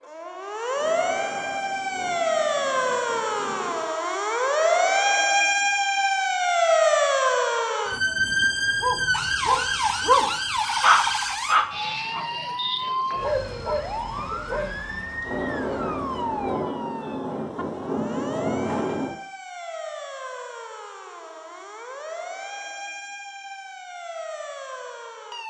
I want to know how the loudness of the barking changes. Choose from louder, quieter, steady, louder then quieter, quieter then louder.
quieter then louder.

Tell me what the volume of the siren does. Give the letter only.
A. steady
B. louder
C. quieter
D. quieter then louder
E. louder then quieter
C.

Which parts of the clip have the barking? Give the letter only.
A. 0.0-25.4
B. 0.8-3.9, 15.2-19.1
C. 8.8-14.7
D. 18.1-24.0
C.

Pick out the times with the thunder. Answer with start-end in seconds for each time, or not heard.
0.8-3.9, 15.2-19.1.